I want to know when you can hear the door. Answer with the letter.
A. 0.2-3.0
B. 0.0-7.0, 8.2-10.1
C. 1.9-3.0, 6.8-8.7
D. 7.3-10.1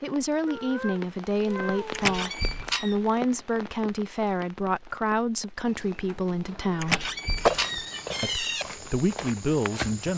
C.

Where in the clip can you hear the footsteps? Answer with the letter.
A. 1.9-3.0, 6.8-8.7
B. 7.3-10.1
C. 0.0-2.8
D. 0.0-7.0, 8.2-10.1
B.